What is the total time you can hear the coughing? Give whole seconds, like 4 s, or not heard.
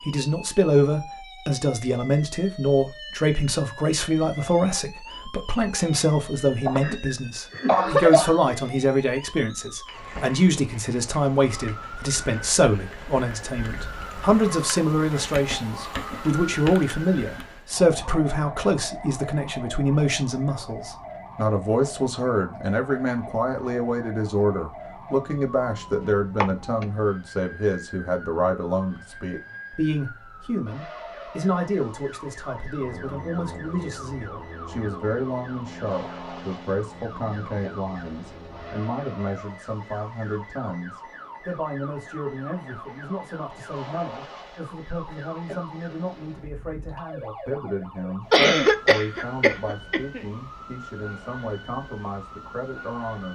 4 s.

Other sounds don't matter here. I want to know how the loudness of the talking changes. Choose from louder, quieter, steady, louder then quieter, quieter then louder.
quieter.